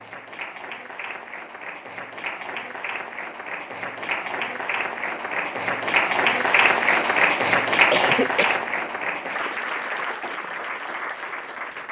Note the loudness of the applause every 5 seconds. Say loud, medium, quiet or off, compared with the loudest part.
medium, loud, medium.